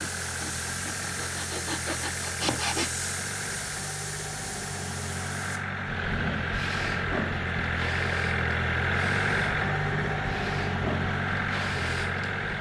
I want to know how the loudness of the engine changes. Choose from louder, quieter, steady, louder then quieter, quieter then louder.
louder.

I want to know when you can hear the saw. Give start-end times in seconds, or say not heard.
0.2-2.9.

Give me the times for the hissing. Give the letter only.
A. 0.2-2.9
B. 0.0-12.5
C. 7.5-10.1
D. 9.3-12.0
B.